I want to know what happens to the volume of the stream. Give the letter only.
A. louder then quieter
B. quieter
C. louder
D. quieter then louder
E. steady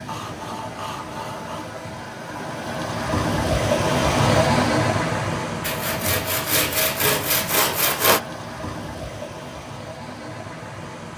A.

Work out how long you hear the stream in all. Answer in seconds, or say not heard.
11 s.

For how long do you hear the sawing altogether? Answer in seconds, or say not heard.
4 s.